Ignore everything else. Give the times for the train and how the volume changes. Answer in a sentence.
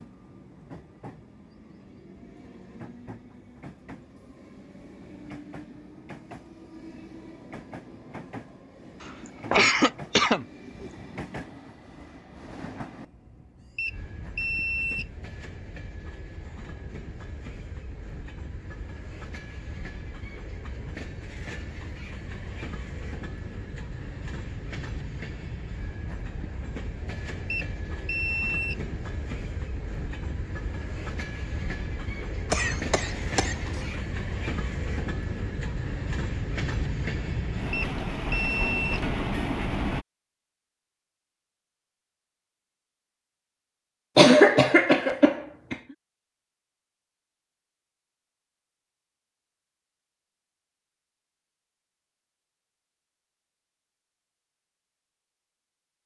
You can hear the train from 0.0 to 40.0 s, getting louder.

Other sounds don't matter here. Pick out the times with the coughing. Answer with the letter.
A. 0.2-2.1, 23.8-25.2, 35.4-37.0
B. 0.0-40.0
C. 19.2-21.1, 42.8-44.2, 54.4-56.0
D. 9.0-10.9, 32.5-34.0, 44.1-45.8
D.